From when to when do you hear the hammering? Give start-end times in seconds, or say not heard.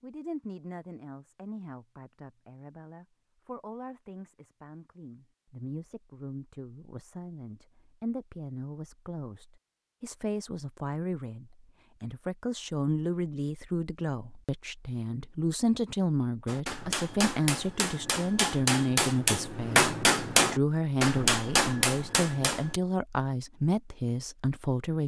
16.4-22.8.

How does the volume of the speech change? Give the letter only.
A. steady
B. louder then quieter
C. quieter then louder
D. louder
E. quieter
D.